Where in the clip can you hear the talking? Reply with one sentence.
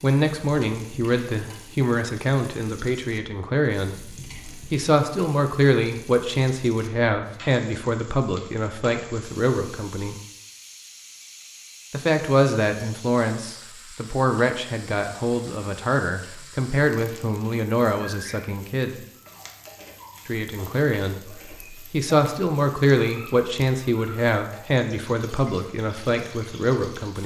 You can hear the talking from 0.0 to 10.2 s, from 11.9 to 19.0 s and from 20.2 to 27.2 s.